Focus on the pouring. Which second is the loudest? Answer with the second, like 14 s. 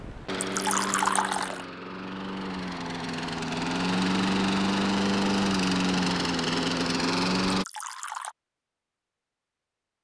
1 s.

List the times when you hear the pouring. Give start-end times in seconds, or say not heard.
0.4-1.6, 7.5-8.3.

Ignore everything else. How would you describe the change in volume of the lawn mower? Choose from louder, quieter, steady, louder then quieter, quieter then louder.
louder.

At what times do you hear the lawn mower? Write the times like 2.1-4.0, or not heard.
0.0-7.7.